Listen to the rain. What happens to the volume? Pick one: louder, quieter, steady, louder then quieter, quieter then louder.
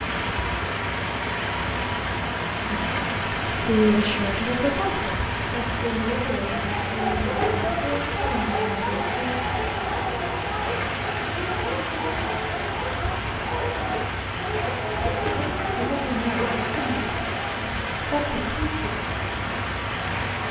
steady.